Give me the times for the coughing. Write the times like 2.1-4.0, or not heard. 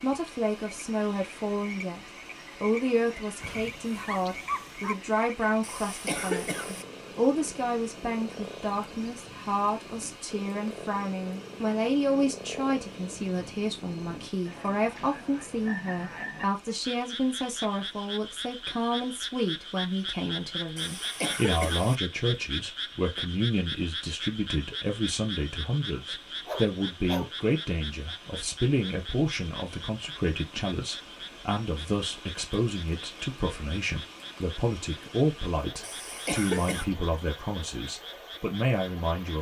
5.6-6.8, 20.8-21.9, 35.8-36.9.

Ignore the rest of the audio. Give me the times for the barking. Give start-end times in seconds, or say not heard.
3.4-5.0, 26.1-27.3.